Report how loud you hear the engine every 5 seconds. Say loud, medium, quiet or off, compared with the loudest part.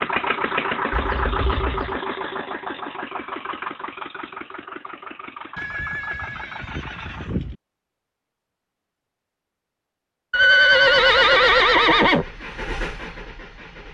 loud, medium, medium.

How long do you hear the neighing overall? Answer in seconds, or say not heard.
5 s.